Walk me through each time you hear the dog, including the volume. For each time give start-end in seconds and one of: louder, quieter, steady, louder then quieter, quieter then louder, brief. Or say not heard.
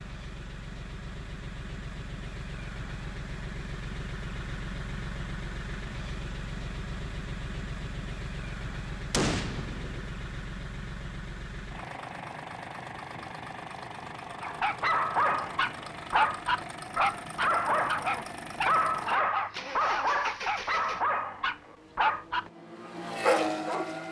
14.4-22.5 steady
23.2-23.9 brief.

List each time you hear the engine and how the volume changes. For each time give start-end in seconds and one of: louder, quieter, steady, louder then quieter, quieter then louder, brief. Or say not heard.
0.0-24.0 steady.